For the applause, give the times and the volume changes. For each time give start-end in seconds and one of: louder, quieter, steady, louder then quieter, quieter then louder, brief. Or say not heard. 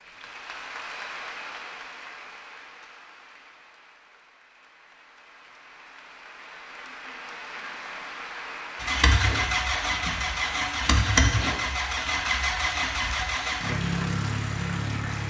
0.0-15.2 quieter then louder.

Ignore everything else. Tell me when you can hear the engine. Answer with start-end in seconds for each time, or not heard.
8.8-15.2.